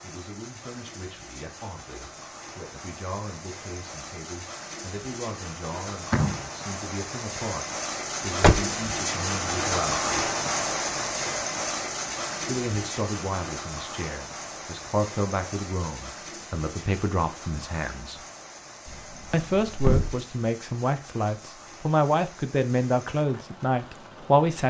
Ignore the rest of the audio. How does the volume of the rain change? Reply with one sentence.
The loudness of the rain goes up, then down.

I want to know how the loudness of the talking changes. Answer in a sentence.
The loudness of the talking goes up.